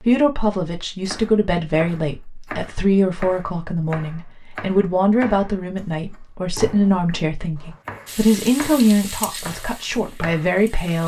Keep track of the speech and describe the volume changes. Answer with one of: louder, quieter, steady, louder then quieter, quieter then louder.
steady.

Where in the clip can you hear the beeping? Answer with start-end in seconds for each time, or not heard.
not heard.